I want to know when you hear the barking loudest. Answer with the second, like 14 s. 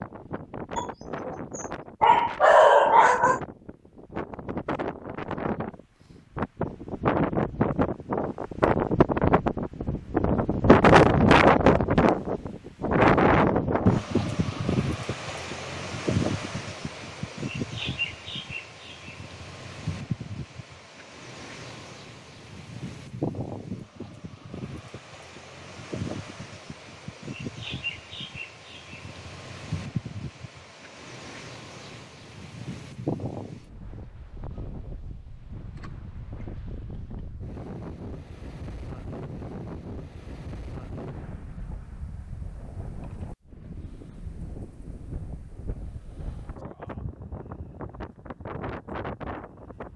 3 s.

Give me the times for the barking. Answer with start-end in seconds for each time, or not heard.
0.8-3.4.